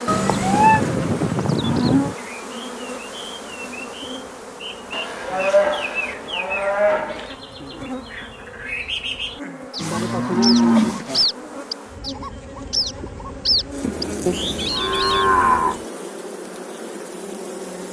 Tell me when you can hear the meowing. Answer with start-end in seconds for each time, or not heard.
0.1-0.8, 13.8-14.8.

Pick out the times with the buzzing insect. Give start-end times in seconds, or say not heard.
0.0-17.8.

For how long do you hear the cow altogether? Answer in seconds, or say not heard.
7 s.